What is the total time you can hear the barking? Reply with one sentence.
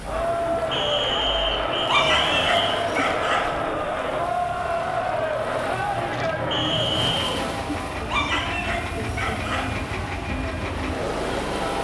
You can hear the barking for 3 seconds altogether.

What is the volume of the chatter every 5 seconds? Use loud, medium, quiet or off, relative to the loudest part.
loud, loud, medium.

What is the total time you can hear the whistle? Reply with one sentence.
You can hear the whistle for 3 seconds altogether.